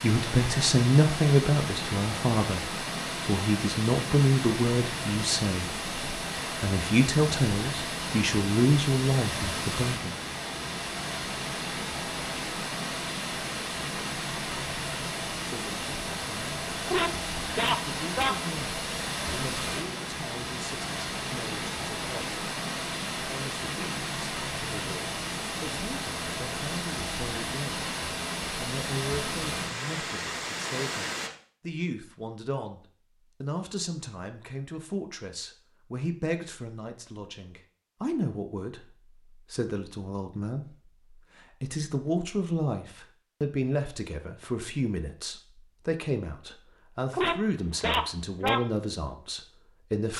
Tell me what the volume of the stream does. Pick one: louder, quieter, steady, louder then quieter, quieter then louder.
steady.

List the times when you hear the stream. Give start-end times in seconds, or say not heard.
0.0-31.3.